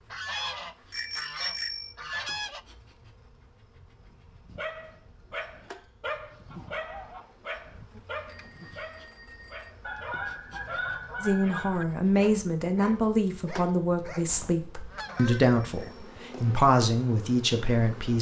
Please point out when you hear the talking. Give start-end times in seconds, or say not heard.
11.2-18.1.